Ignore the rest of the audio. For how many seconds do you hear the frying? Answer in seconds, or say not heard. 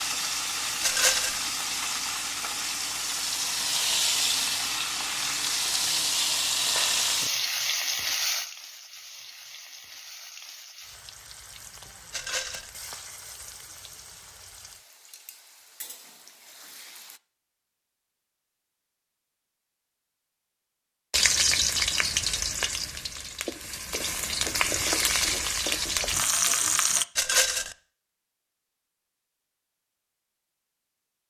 23 s.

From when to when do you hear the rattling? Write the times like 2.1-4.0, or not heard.
0.8-1.4, 12.1-12.7, 27.1-27.8.